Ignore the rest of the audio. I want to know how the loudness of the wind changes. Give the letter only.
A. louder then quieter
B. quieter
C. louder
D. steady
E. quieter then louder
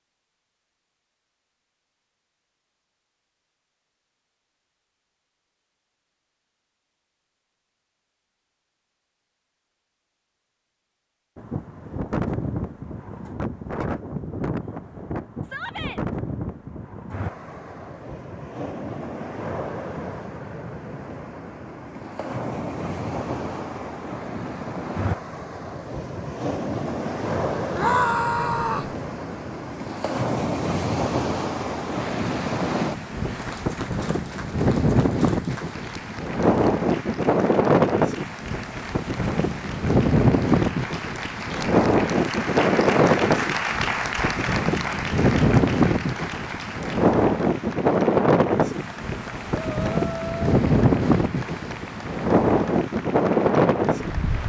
C.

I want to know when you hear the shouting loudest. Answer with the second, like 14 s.
28 s.